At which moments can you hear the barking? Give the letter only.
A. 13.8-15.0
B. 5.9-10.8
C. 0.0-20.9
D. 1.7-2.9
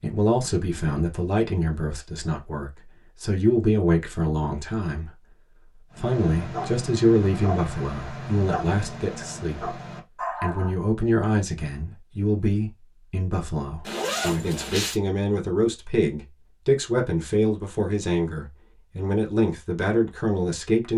B.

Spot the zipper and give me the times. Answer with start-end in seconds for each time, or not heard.
13.8-15.0.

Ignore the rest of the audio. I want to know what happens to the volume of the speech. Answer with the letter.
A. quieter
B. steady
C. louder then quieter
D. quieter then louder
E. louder
B.